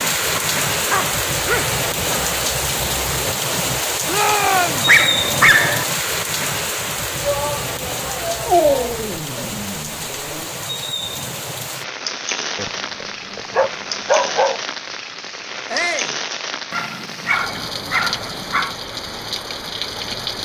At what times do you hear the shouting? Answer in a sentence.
You can hear the shouting from 4.0 to 4.8 s, from 7.2 to 9.5 s and from 15.7 to 16.1 s.